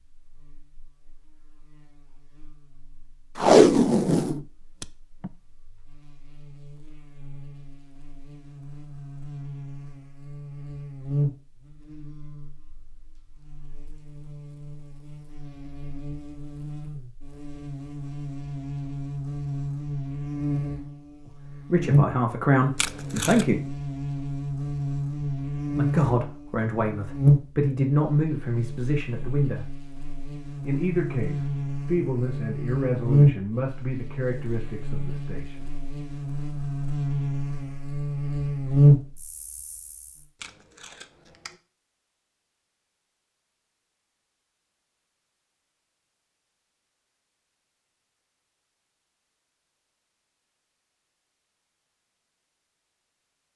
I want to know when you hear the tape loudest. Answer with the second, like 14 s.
4 s.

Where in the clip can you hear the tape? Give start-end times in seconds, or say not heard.
3.4-5.3, 22.8-23.4, 40.4-41.5.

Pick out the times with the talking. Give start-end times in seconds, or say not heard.
21.3-23.6, 25.8-29.8, 30.6-35.7.